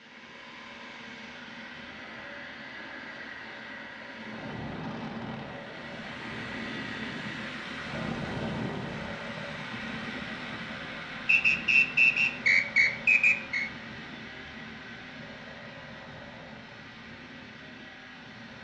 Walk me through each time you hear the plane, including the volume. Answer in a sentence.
You can hear the plane from 0.0 to 18.5 s, getting louder then quieter.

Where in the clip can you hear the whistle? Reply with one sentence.
The whistle can be heard from 11.2 to 13.7 s.